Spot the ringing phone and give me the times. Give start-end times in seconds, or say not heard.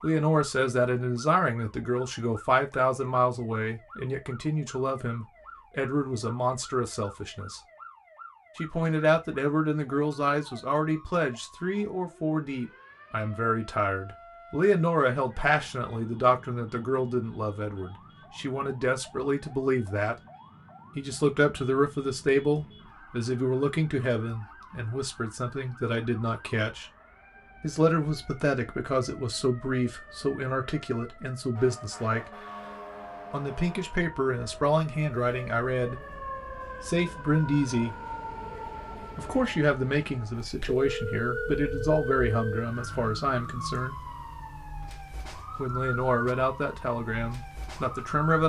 40.6-42.6.